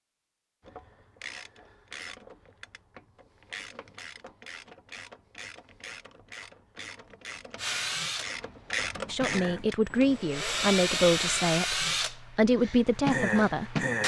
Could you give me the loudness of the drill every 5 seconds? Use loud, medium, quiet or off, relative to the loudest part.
off, medium, loud.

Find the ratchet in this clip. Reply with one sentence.
The ratchet can be heard from 0.6 to 11.5 s.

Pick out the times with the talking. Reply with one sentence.
You can hear the talking from 9.1 to 13.8 s.